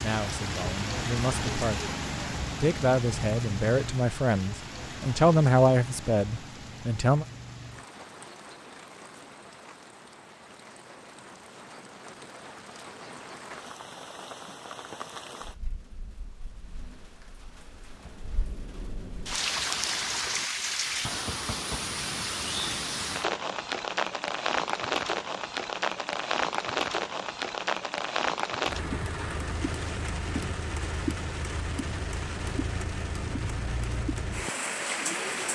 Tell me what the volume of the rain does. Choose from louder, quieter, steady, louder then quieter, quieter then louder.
quieter then louder.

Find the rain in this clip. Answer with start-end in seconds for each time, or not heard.
0.0-35.5.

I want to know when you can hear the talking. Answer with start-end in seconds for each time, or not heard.
0.0-1.9, 2.6-7.2.